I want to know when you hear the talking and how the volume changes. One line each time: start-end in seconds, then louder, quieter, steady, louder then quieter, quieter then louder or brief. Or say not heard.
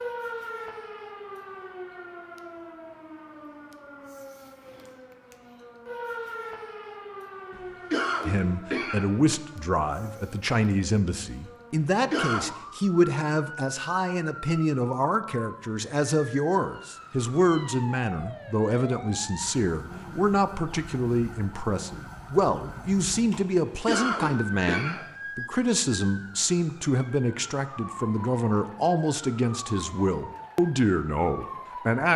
8.2-32.1 steady.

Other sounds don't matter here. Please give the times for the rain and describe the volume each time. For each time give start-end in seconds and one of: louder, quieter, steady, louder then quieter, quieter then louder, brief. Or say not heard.
not heard.